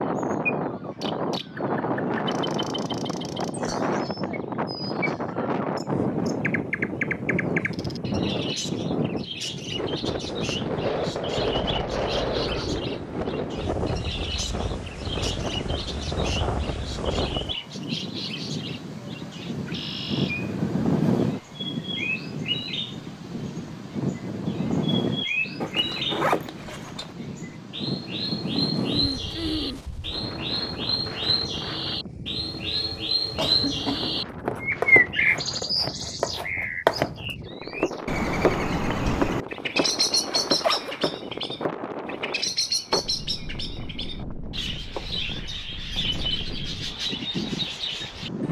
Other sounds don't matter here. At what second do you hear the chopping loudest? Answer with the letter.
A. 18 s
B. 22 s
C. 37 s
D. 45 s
C.